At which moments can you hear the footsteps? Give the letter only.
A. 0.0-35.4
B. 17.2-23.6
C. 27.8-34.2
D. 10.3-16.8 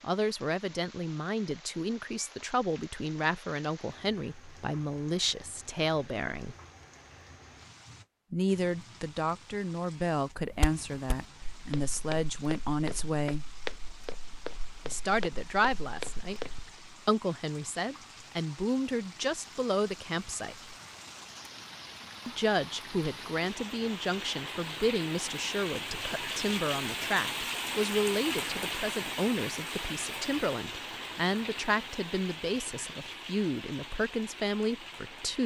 D.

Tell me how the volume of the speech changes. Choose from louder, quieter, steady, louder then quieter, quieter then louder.
steady.